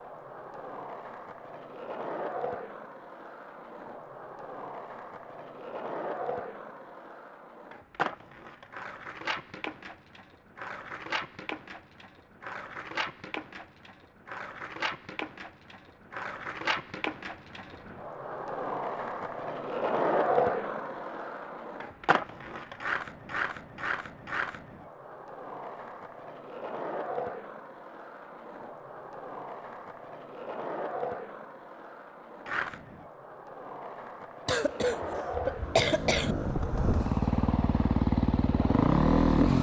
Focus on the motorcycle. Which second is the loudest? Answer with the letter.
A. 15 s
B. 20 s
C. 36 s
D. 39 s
D.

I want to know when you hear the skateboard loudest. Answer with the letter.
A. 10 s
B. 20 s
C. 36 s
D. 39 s
B.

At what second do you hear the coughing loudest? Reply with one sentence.
The loudest moment of the coughing is at 36 seconds.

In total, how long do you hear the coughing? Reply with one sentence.
You can hear the coughing for 2 seconds altogether.